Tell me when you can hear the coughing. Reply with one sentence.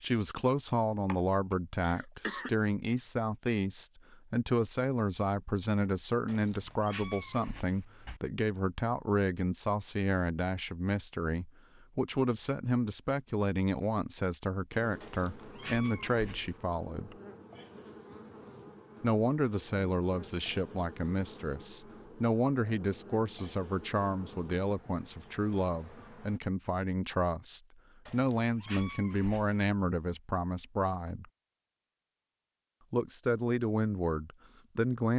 You can hear the coughing from 1.1 to 2.5 s.